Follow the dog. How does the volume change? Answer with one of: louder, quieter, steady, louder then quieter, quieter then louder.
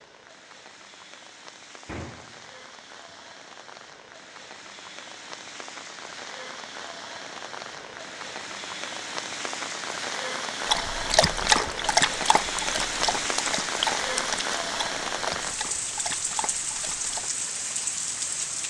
quieter.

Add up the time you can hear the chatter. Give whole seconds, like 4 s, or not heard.
not heard.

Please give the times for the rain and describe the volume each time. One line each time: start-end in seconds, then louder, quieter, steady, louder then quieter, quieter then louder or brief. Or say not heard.
0.0-18.6 louder.